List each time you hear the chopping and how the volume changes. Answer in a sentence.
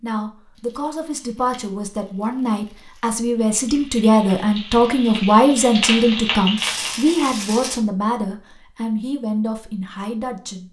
The chopping can't be heard in this clip.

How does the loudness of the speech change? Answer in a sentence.
The loudness of the speech goes up, then down.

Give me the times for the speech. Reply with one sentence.
The speech can be heard from 0.0 to 10.6 s.